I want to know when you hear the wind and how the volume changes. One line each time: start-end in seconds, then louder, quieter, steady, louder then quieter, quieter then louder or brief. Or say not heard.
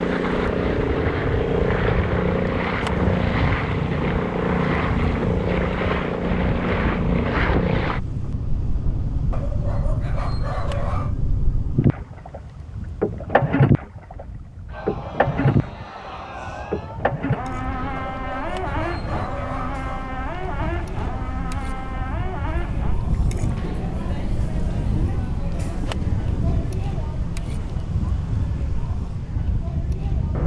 0.0-30.4 quieter then louder.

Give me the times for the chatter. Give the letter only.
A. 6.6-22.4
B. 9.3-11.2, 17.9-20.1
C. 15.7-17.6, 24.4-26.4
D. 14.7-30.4
D.